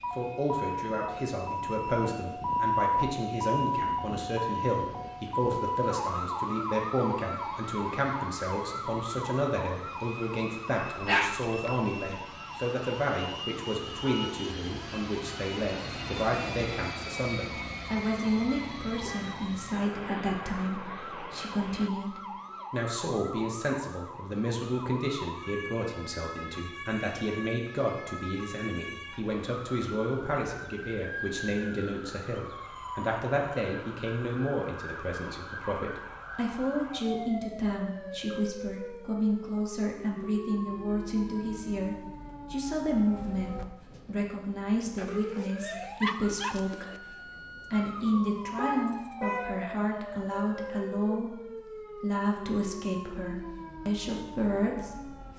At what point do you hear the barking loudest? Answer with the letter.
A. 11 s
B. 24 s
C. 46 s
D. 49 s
A.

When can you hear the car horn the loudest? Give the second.
49 s.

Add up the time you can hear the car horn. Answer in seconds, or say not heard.
2 s.